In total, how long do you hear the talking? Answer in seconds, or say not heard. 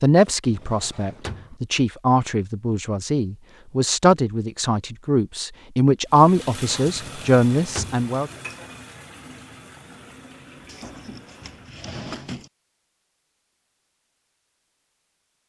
8 s.